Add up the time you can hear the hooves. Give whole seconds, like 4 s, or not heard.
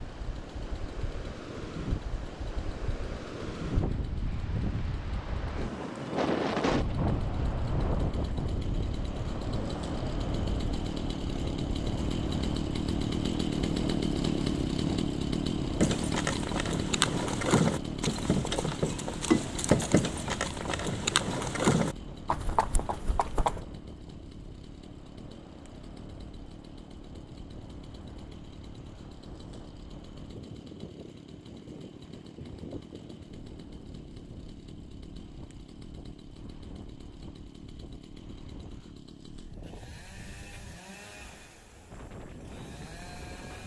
8 s.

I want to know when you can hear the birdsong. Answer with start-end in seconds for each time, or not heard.
not heard.